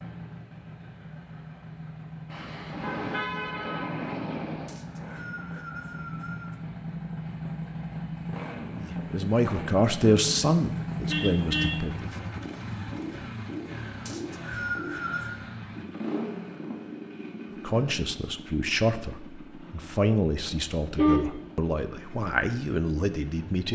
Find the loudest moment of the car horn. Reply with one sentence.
The loudest moment of the car horn is at 21 seconds.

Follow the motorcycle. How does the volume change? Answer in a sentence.
The volume of the motorcycle goes up, then down.